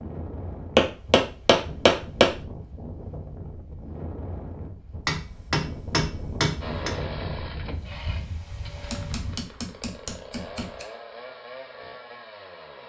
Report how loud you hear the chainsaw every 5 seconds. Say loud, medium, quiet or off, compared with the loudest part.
off, loud, loud.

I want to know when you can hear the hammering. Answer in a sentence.
You can hear the hammering from 0.8 to 2.3 s, from 5.0 to 6.9 s and from 8.8 to 10.8 s.